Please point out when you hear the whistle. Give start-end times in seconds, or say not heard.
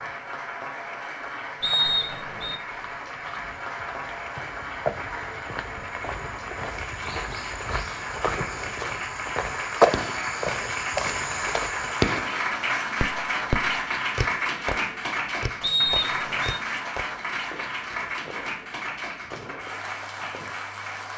1.6-2.6, 15.6-16.6.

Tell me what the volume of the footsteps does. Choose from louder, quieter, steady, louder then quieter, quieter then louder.
louder then quieter.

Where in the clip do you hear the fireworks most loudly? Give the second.
12 s.